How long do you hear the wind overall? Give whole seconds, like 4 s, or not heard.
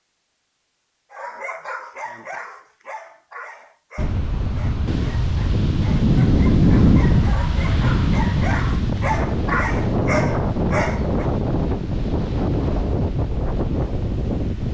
11 s.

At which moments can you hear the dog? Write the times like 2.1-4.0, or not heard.
1.1-11.2.